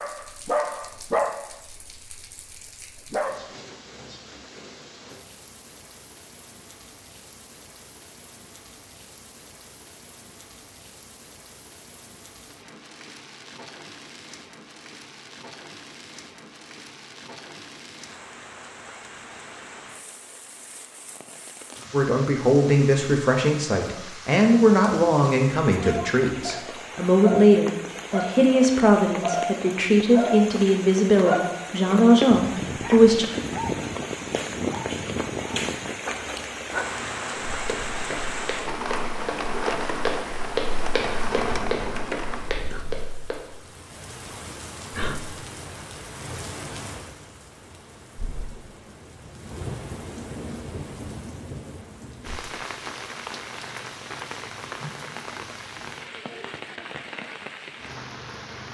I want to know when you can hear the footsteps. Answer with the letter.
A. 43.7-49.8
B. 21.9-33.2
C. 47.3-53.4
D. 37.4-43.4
D.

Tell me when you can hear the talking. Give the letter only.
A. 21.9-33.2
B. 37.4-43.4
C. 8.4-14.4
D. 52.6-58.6
A.